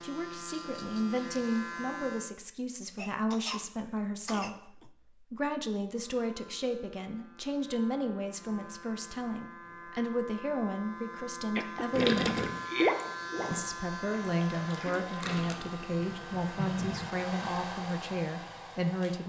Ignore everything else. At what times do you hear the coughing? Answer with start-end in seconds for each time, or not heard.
3.0-4.9, 11.6-13.0.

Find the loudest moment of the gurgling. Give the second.
13 s.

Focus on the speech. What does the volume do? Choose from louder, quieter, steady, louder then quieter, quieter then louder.
steady.